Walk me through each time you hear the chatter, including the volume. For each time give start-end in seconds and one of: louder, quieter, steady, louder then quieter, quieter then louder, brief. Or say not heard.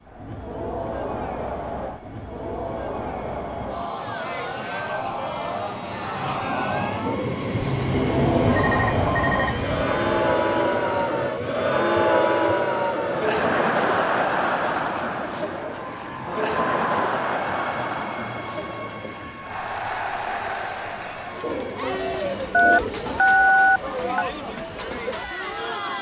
0.0-25.9 louder then quieter.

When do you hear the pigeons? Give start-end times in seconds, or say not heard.
7.0-8.6, 21.4-23.2.